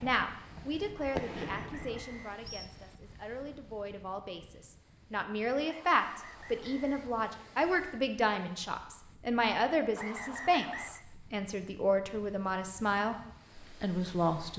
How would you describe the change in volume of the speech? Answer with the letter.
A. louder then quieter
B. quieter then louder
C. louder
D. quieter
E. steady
C.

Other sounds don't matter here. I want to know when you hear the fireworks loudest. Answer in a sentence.
The volume of the fireworks peaks at 1 second.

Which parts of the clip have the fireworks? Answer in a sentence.
The fireworks can be heard from 0.0 to 2.7 s.